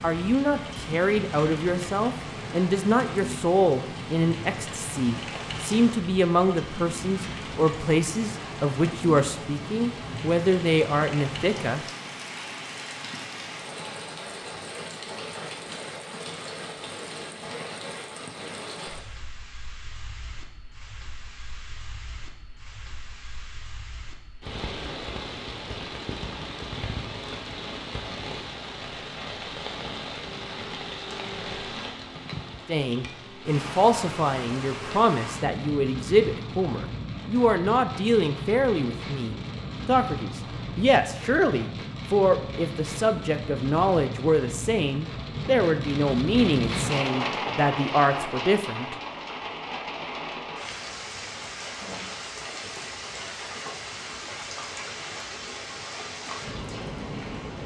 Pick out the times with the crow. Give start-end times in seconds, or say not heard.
not heard.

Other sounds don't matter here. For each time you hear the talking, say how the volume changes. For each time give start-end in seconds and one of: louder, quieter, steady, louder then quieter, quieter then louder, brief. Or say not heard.
0.0-11.8 steady
32.6-49.0 steady.